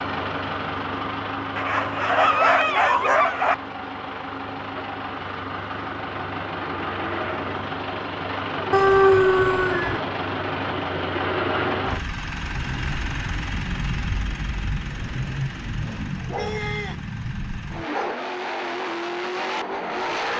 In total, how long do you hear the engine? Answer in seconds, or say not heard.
20 s.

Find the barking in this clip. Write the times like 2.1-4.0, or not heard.
1.6-3.5, 8.7-10.0, 16.1-17.0, 17.7-18.2.